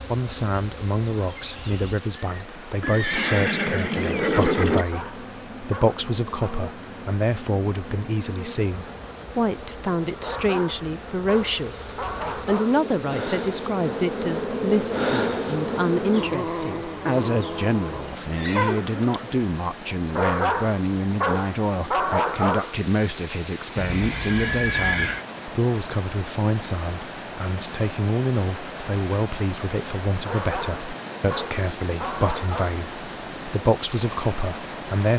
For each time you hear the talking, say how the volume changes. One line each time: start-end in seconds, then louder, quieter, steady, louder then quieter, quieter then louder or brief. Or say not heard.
0.1-35.1 steady.